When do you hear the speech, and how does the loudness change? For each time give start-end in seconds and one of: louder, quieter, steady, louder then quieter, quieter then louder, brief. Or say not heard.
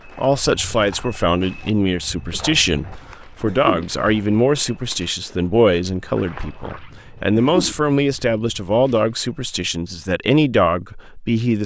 0.1-11.6 steady.